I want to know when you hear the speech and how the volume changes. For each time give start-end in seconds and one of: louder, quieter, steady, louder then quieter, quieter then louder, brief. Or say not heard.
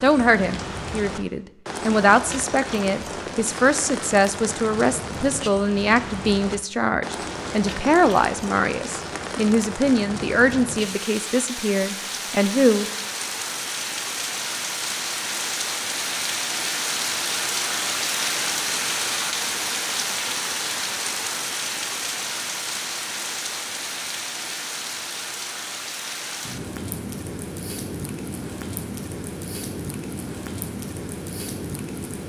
0.0-12.8 steady.